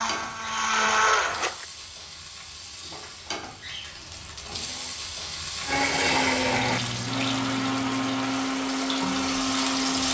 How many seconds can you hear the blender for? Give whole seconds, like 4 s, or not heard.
7 s.